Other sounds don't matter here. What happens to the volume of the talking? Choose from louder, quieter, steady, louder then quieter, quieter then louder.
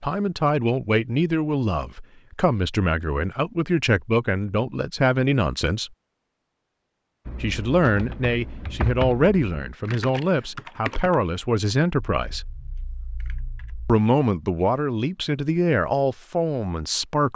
steady.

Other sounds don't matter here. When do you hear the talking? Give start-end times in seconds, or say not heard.
0.0-5.9, 7.4-12.4, 13.8-17.3.